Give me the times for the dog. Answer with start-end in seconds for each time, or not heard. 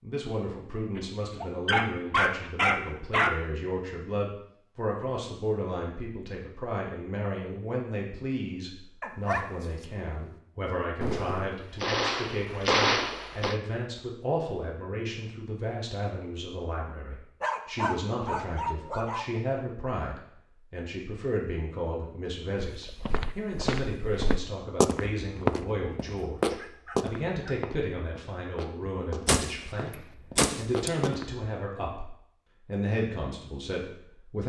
0.9-3.4, 9.0-9.5, 17.4-19.4, 26.1-27.6.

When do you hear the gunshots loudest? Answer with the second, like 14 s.
13 s.